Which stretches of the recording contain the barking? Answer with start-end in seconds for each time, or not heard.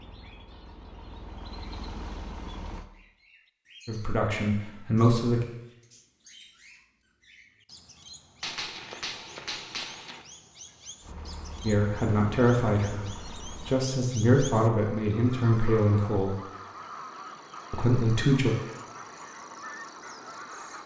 not heard.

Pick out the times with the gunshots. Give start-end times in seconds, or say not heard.
8.4-10.2.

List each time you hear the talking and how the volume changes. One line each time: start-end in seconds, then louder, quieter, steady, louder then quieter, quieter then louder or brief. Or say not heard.
3.9-5.5 brief
11.7-16.4 quieter then louder
17.7-18.6 brief.